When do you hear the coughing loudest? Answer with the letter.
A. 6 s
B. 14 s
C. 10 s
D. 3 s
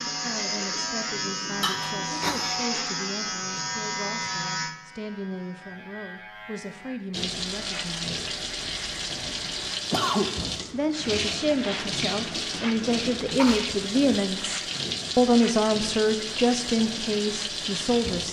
C.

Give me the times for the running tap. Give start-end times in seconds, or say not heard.
7.1-18.2.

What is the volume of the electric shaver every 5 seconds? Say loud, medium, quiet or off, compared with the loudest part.
loud, quiet, off, off.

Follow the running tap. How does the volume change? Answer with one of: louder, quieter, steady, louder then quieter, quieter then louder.
steady.